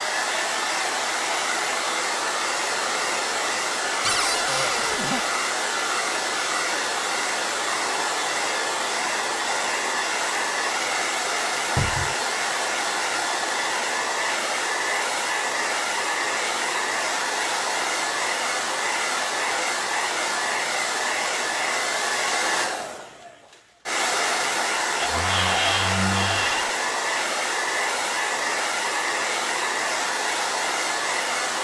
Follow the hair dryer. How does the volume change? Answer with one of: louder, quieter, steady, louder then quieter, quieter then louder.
steady.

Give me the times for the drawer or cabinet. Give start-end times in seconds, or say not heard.
4.0-5.2, 11.8-12.2, 25.0-26.7.